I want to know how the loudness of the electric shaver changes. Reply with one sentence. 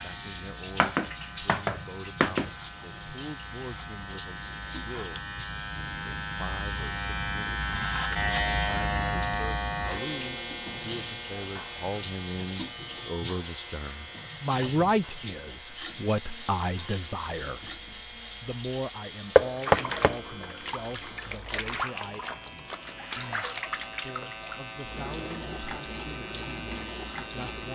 The volume of the electric shaver goes up, then down.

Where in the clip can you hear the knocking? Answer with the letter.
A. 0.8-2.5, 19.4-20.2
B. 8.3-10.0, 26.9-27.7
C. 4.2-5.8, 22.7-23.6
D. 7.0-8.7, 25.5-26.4
A.